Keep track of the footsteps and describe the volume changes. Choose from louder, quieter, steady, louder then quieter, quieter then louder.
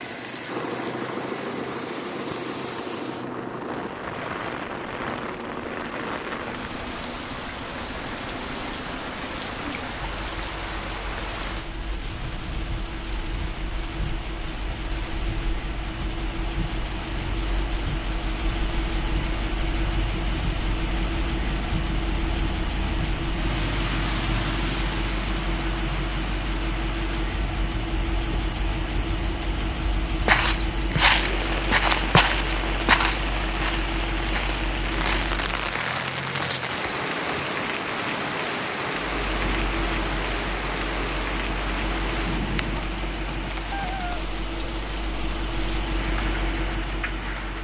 quieter.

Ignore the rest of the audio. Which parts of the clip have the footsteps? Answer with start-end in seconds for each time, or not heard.
30.2-37.5.